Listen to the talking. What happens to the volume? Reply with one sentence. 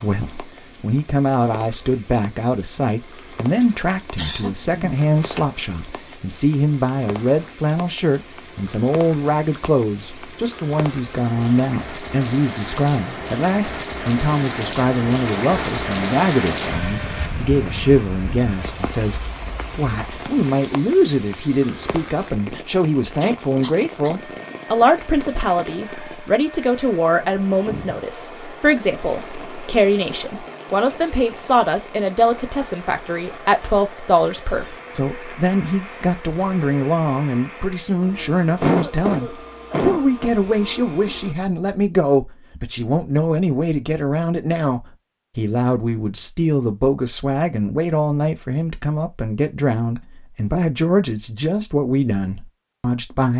The loudness of the talking stays about the same.